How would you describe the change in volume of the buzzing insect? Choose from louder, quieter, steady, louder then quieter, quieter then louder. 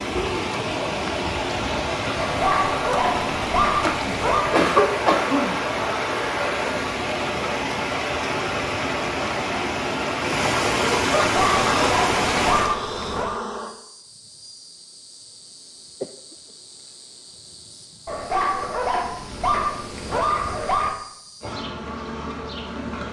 quieter then louder.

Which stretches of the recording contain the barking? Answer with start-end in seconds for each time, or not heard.
2.1-4.5, 11.3-13.4, 18.1-20.9.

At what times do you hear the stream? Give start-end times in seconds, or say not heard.
0.0-12.8.